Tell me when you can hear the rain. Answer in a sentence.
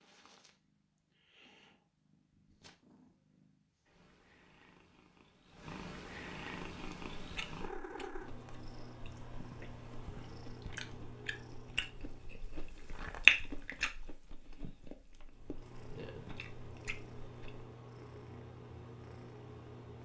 You can't hear the rain here.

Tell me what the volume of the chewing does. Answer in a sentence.
The loudness of the chewing goes up, then down.